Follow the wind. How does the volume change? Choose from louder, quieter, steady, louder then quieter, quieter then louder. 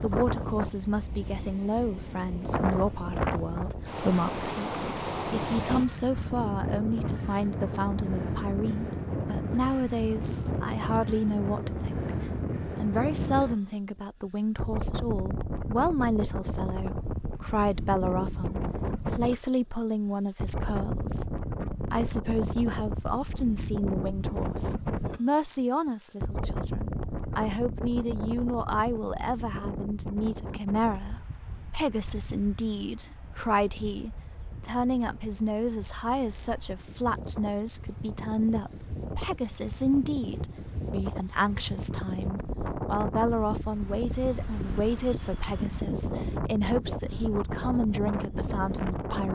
quieter then louder.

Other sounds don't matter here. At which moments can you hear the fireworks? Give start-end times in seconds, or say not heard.
not heard.